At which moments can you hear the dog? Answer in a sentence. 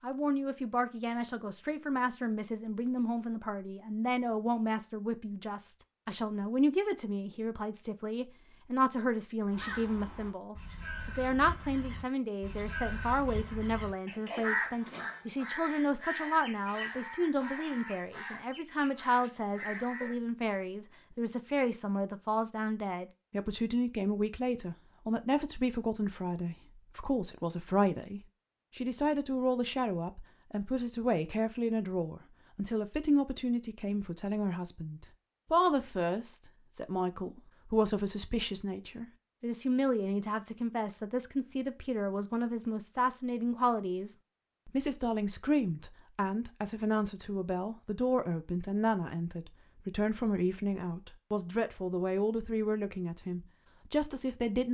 You can't hear the dog here.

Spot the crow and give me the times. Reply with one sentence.
You can hear the crow from 9.5 to 20.1 s.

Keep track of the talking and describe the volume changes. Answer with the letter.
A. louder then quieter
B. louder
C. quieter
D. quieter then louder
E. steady
E.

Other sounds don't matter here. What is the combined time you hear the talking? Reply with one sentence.
You can hear the talking for 55 seconds altogether.